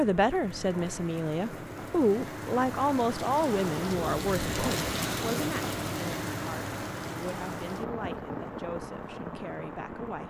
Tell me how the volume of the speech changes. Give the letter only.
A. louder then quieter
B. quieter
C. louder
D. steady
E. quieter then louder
B.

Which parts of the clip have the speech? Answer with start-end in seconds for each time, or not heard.
0.0-10.2.